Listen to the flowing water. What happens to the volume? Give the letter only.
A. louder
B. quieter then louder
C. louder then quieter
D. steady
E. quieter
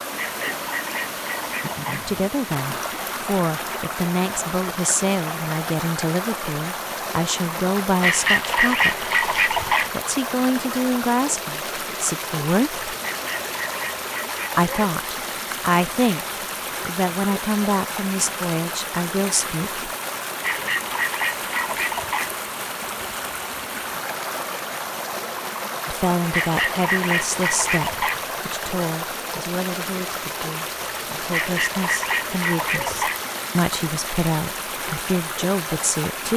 D.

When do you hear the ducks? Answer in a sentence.
The ducks can be heard from 0.1 to 2.0 s, from 8.0 to 9.9 s, from 13.2 to 14.9 s, from 20.4 to 22.3 s, from 26.3 to 28.2 s and from 31.3 to 33.2 s.